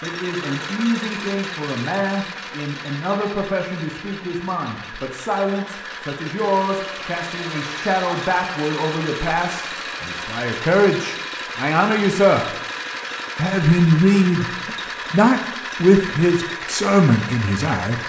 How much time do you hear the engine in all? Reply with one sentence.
The engine can be heard for 18 seconds in total.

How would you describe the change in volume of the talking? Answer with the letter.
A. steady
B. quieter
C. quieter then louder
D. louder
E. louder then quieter
D.